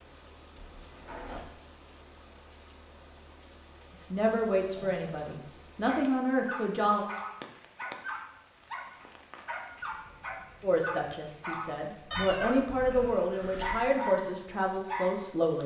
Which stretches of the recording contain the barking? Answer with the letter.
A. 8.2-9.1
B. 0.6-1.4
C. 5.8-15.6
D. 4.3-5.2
C.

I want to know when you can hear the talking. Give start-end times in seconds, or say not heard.
4.0-7.0, 10.6-15.6.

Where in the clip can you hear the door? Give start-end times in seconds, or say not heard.
0.6-1.4.